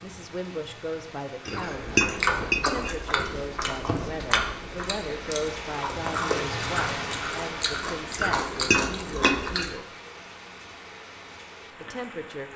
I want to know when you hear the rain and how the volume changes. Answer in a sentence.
The rain can be heard from 0.0 to 12.5 s, getting louder then quieter.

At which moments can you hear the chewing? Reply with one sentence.
The chewing can be heard from 1.5 to 9.8 s.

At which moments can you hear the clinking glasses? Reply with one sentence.
You can hear the clinking glasses from 1.4 to 3.0 s and from 8.2 to 9.8 s.